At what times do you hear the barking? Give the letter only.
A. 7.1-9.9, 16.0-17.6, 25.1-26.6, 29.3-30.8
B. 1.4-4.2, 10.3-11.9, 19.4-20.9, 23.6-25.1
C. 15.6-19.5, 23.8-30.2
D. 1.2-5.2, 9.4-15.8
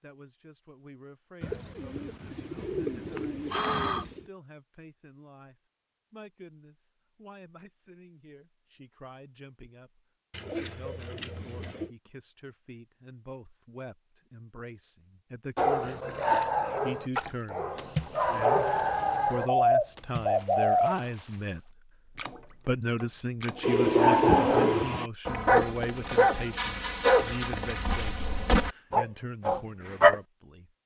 C.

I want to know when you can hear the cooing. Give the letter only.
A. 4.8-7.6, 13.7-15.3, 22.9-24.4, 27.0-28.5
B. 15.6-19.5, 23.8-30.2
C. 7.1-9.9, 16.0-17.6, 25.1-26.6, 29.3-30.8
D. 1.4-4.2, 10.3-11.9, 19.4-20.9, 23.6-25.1
D.